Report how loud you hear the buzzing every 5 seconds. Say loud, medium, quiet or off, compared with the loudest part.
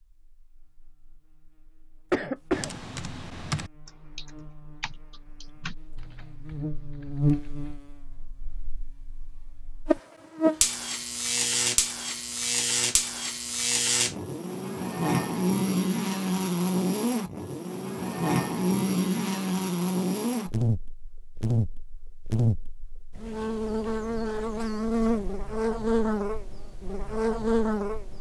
quiet, medium, loud, loud, loud, loud.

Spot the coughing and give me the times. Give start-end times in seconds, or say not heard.
2.1-2.8.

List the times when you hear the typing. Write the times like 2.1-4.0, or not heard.
2.5-7.8.